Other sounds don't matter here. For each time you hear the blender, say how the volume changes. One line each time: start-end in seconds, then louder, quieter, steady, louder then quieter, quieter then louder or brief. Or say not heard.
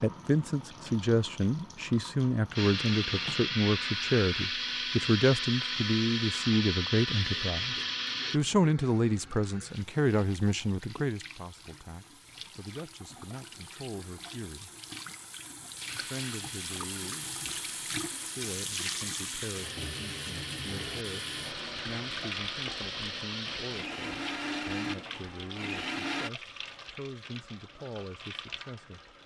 2.5-8.4 steady
15.8-26.3 louder.